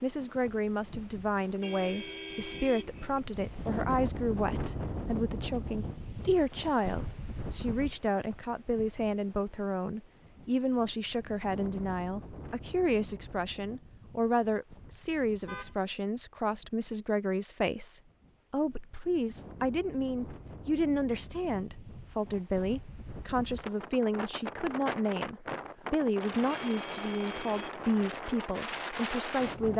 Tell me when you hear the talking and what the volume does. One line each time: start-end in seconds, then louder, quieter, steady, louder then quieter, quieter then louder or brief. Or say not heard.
0.0-29.7 steady.